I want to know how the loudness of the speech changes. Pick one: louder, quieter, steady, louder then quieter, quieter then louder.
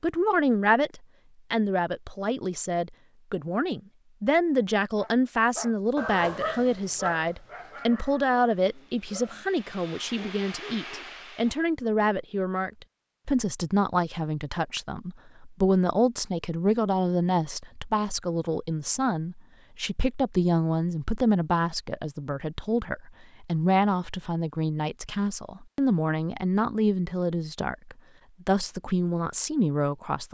steady.